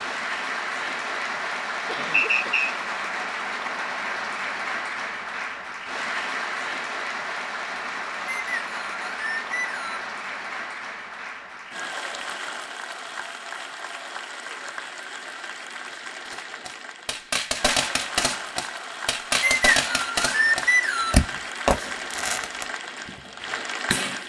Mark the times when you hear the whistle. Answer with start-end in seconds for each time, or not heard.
2.1-2.7, 8.2-10.1, 19.4-21.2.